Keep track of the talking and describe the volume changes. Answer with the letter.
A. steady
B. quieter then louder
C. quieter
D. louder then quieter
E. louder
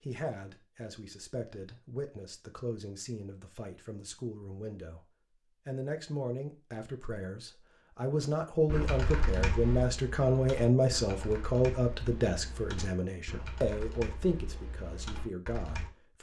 D.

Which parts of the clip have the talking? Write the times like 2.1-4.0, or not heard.
0.0-16.1.